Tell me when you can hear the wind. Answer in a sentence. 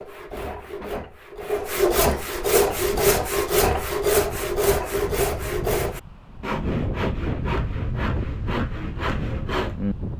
You can hear the wind from 2.5 to 10.1 s.